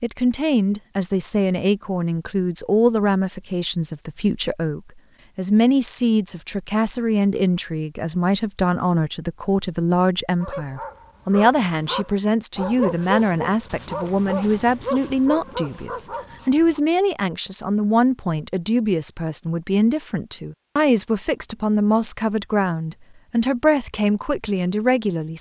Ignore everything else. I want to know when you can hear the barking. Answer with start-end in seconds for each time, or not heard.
10.4-16.8.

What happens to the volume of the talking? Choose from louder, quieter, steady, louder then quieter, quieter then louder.
steady.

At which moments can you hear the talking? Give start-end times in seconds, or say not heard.
0.0-25.3.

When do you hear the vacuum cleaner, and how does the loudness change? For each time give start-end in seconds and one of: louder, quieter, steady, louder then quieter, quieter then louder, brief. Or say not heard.
not heard.